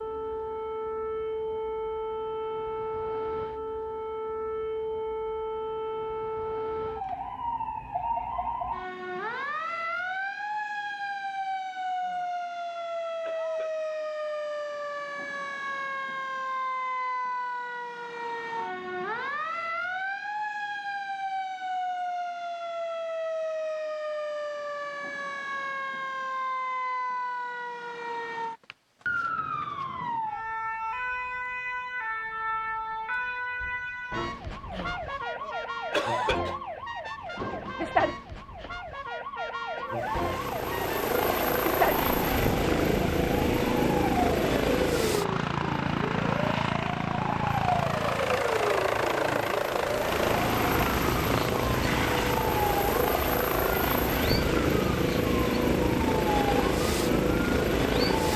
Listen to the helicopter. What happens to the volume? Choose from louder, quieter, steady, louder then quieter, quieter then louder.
steady.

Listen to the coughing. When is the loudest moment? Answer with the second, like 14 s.
36 s.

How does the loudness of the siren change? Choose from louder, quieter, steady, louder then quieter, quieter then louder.
steady.